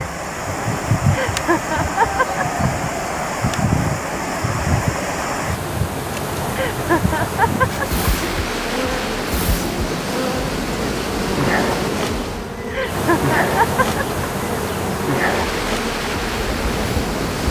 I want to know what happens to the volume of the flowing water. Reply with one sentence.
The volume of the flowing water stays about the same.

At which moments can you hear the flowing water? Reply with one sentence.
You can hear the flowing water from 0.0 to 17.4 s.